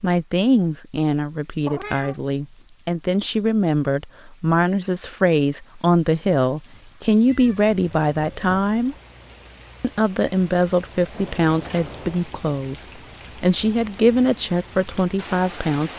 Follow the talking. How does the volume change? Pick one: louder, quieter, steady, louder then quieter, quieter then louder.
steady.